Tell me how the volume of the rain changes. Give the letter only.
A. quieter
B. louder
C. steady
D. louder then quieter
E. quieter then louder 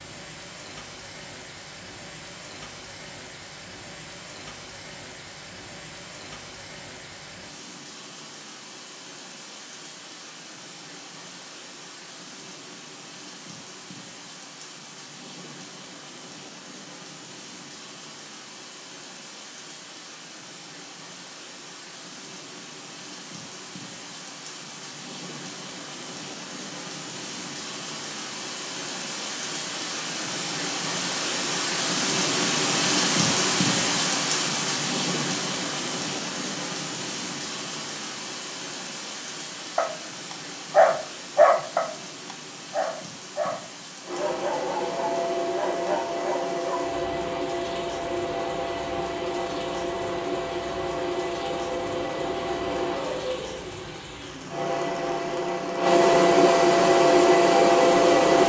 D.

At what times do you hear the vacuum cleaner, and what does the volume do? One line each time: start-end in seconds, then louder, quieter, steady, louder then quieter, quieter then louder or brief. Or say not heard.
44.0-58.4 louder.